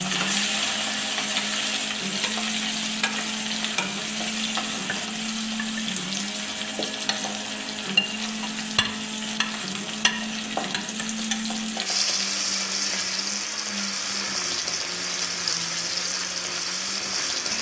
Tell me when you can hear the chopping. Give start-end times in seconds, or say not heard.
not heard.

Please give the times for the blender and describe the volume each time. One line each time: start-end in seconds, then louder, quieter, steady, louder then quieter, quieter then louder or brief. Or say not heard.
0.0-17.5 steady.